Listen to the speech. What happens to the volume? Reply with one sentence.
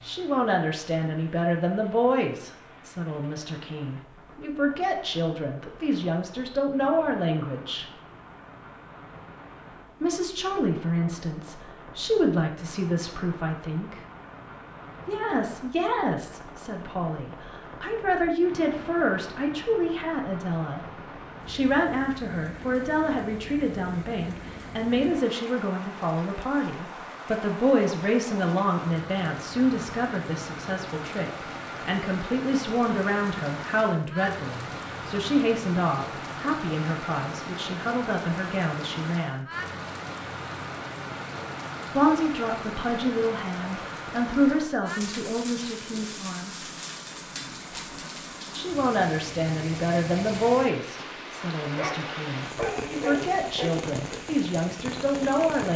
The volume of the speech stays about the same.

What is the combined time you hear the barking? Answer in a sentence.
The barking can be heard for 2 seconds in total.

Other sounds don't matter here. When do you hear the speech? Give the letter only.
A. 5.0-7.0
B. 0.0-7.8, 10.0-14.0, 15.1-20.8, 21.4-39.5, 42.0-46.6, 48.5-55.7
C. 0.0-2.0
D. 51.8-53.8
B.